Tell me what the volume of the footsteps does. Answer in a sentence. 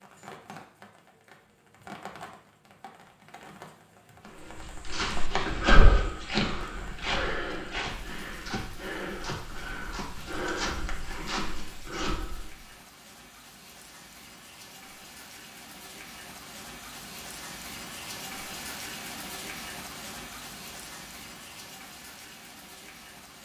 The loudness of the footsteps goes down.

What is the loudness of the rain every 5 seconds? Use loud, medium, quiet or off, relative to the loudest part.
medium, medium, medium, loud, loud.